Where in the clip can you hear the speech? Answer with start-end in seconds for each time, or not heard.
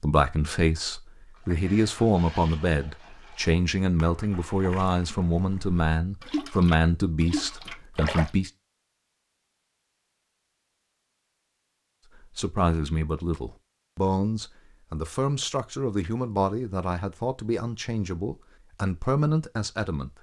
0.0-8.5, 12.2-20.1.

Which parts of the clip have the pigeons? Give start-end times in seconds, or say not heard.
not heard.